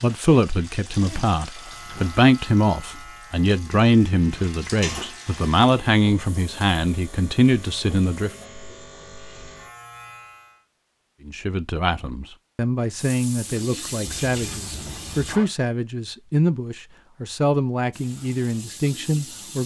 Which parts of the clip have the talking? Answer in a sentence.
The talking can be heard from 0.0 to 8.3 s and from 11.2 to 19.6 s.